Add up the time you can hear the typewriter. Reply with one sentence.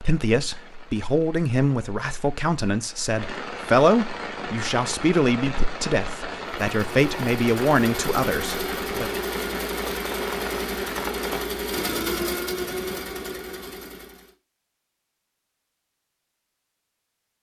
The typewriter can't be heard in this clip.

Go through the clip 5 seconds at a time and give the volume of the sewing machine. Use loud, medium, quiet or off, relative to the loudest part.
off, loud, loud, off.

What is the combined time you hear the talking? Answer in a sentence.
You can hear the talking for 9 seconds altogether.